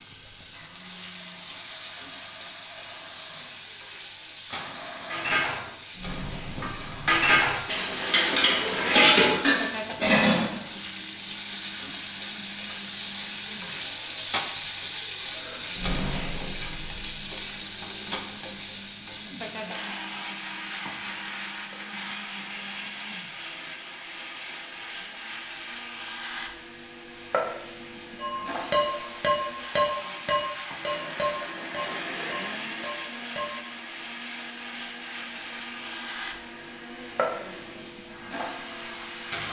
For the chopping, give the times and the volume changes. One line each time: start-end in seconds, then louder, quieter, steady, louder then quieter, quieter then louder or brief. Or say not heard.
not heard.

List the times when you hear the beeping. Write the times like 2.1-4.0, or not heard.
not heard.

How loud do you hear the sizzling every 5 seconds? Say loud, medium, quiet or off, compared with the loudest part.
medium, medium, loud, loud, medium, medium, medium, medium.